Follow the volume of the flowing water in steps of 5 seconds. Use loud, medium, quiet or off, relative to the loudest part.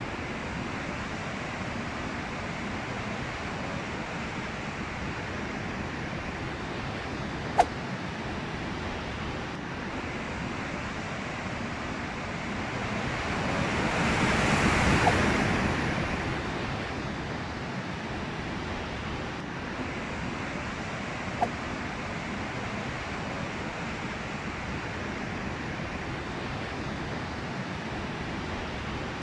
medium, medium, loud, loud, medium, medium.